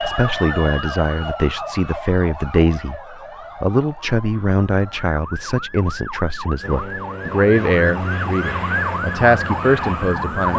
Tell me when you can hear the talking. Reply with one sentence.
The talking can be heard from 0.0 to 10.5 s.